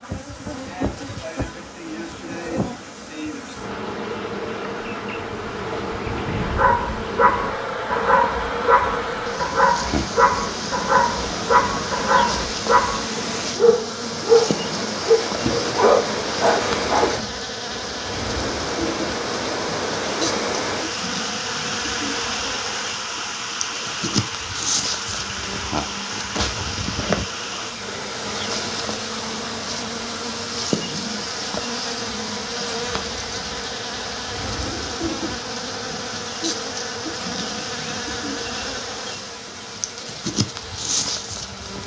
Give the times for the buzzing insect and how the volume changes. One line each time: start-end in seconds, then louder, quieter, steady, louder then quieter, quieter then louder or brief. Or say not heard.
0.0-41.8 steady.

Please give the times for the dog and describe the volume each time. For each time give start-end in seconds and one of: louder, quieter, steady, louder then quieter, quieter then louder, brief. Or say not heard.
6.4-17.4 steady.